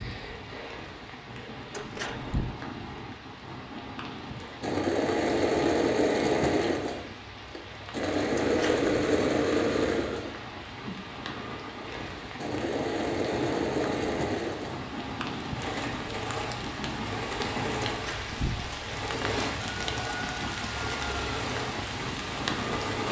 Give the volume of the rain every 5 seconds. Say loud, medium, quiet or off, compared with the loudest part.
medium, medium, medium, loud, loud.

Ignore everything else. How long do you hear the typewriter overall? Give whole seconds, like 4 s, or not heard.
not heard.